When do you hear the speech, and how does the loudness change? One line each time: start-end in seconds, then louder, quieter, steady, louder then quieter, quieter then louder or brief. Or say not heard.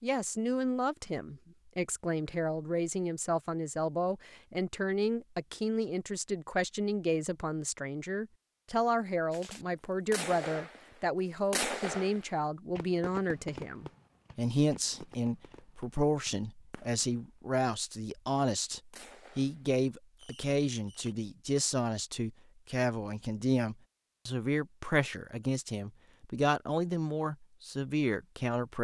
0.0-28.7 steady.